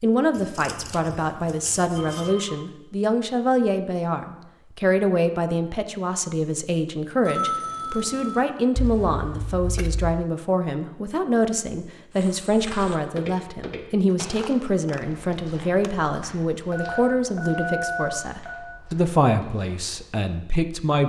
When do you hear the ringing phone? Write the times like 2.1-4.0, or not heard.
1.9-2.5, 7.2-8.4, 16.7-18.6.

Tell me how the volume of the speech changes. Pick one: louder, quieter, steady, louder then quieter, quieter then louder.
steady.